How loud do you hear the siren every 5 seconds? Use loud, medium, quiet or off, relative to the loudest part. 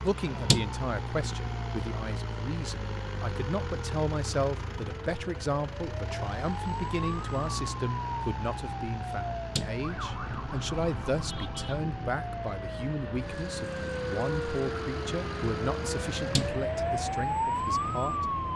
quiet, medium, medium, loud.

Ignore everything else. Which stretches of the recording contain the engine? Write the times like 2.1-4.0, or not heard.
0.0-16.5.